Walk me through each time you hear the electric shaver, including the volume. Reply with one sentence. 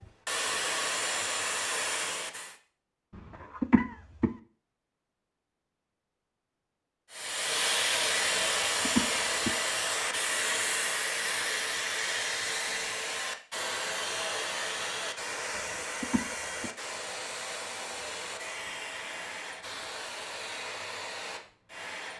The electric shaver can't be heard in this clip.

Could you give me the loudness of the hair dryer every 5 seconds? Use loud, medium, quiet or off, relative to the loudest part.
loud, loud, loud, medium, medium.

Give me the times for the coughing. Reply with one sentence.
You can hear the coughing from 3.1 to 4.3 s, from 8.3 to 9.6 s and from 15.6 to 16.7 s.